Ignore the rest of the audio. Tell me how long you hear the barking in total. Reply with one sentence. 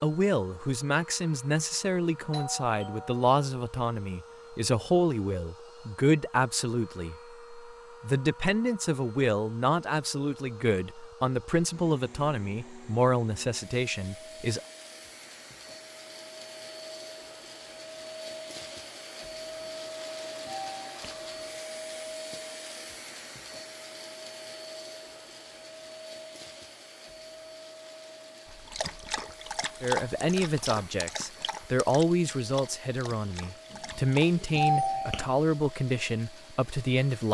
The barking can be heard for 6 seconds in total.